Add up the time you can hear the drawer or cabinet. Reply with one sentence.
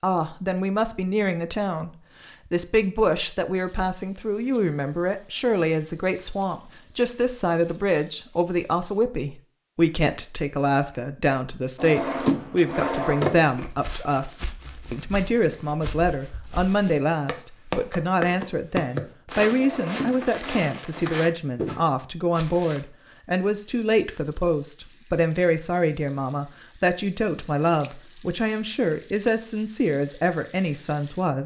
You can hear the drawer or cabinet for 3 seconds altogether.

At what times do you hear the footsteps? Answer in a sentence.
You can hear the footsteps from 13.4 to 22.8 s.